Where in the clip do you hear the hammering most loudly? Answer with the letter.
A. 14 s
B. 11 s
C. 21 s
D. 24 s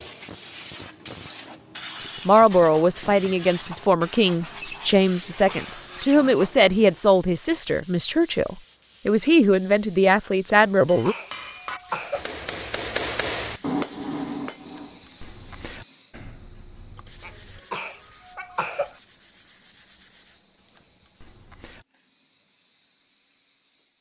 A.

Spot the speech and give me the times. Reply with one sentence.
You can hear the speech from 2.2 to 11.2 s.